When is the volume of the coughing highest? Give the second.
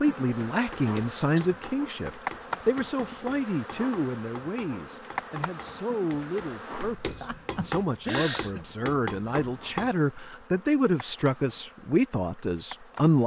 8 s.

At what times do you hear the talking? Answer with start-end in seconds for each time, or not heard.
0.0-13.2.